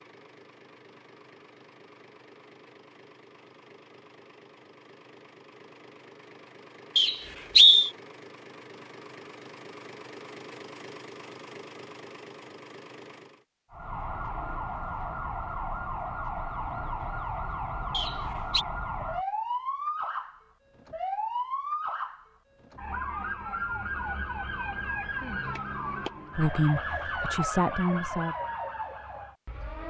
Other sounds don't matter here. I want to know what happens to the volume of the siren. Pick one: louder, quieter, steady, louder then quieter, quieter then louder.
steady.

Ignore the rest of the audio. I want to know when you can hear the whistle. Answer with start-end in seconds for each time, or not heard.
7.0-7.9, 17.9-18.6.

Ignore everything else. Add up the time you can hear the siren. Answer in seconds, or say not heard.
16 s.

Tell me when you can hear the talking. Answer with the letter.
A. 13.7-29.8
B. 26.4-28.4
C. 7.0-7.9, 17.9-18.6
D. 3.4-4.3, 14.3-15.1
B.